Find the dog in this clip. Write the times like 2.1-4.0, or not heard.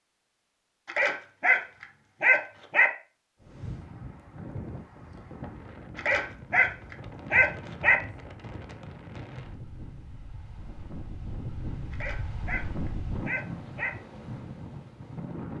0.8-2.9, 6.0-8.0, 11.9-13.9.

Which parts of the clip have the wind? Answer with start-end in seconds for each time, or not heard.
3.4-15.5.